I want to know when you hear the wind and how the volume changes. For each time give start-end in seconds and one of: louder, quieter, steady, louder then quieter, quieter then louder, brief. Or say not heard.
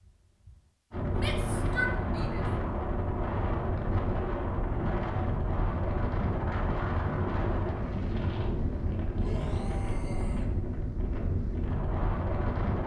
0.0-12.8 steady.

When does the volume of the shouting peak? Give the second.
2 s.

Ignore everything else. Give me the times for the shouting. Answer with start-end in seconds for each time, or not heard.
1.1-2.5, 9.2-10.4.